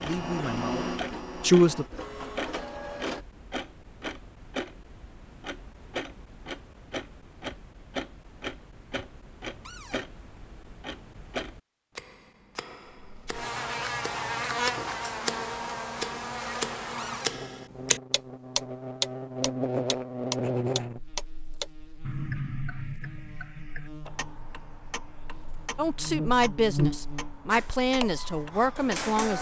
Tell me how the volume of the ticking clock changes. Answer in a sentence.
The volume of the ticking clock goes up, then down.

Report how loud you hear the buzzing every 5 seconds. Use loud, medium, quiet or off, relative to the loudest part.
off, off, loud, loud, medium, loud.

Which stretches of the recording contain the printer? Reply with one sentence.
You can hear the printer from 0.0 to 3.2 s and from 27.5 to 29.3 s.